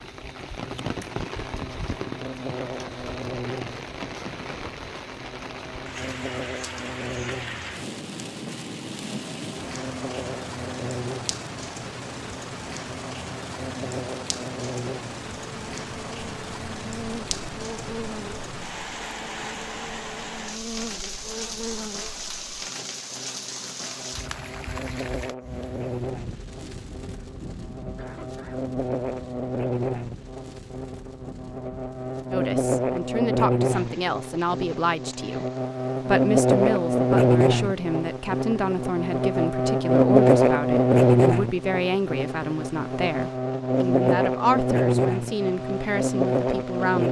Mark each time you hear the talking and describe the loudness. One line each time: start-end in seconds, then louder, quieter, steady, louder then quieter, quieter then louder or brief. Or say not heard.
32.3-47.0 steady.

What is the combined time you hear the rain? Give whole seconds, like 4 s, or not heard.
47 s.